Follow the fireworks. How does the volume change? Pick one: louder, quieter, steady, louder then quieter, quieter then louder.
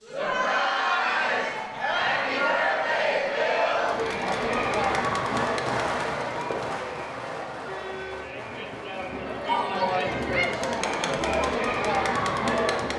louder then quieter.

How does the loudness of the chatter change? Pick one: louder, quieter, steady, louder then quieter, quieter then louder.
quieter then louder.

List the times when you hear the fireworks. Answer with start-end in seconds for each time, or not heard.
1.0-9.2.